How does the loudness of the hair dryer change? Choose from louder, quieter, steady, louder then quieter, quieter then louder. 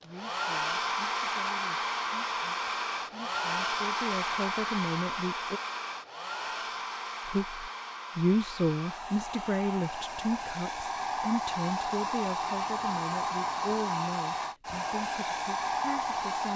quieter then louder.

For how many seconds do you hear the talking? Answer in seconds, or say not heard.
15 s.